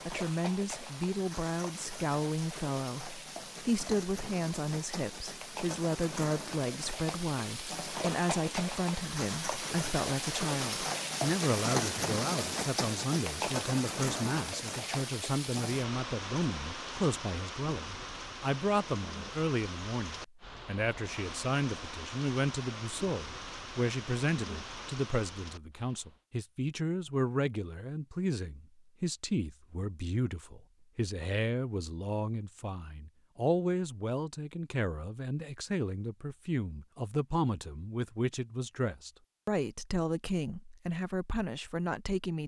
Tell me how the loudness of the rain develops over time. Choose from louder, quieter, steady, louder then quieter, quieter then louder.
louder then quieter.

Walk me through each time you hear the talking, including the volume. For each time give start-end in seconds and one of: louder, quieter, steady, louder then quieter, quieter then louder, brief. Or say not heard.
0.1-42.4 steady.